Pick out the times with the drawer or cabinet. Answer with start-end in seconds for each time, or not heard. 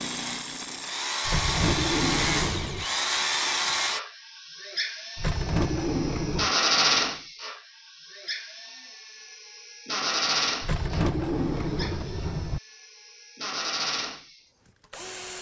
1.2-2.9, 5.2-6.5, 10.6-12.6.